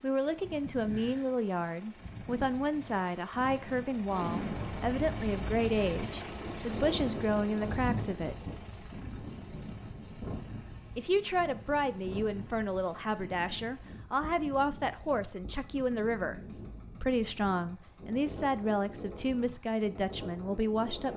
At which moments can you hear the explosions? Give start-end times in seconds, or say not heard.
4.0-6.1.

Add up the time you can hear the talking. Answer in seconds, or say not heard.
18 s.